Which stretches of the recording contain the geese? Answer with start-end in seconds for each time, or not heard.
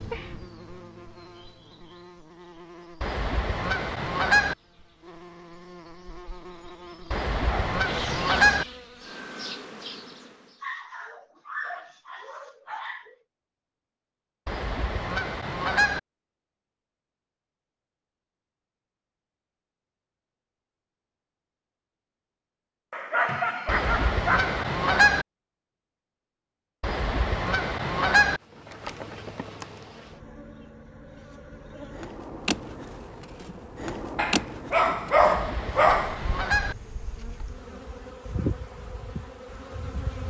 3.0-4.5, 7.1-8.7, 14.4-16.0, 23.6-25.2, 26.8-28.4, 35.2-36.8.